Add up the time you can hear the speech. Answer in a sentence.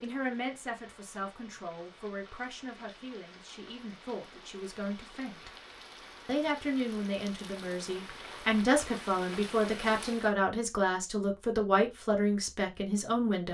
You can hear the speech for 13 seconds altogether.